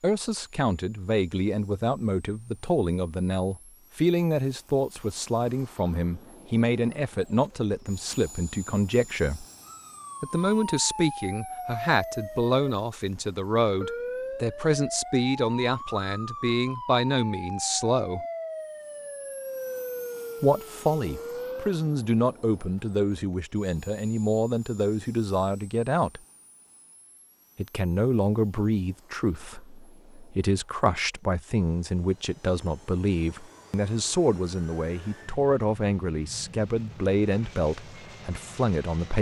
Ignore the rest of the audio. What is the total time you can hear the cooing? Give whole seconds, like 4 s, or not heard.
not heard.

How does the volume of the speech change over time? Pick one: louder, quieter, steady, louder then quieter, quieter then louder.
steady.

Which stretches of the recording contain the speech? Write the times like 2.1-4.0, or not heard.
0.0-9.4, 10.2-18.2, 20.4-26.2, 27.6-39.1.